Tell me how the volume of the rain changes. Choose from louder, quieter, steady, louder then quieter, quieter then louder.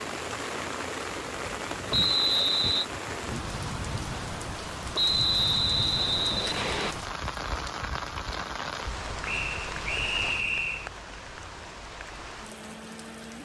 quieter.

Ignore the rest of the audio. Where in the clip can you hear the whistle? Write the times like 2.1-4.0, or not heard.
1.9-2.9, 5.0-7.0, 9.2-10.9.